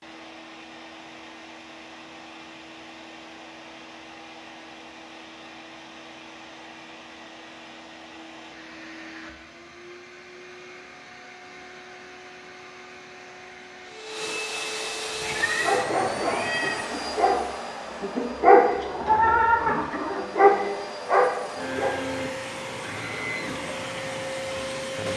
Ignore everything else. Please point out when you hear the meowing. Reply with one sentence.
You can hear the meowing from 15.2 to 16.9 s.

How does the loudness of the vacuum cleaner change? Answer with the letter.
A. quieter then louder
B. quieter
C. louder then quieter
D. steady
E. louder
E.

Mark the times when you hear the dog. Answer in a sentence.
The dog can be heard from 15.6 to 22.0 s.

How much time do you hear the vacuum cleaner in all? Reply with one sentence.
The vacuum cleaner can be heard for 25 seconds in total.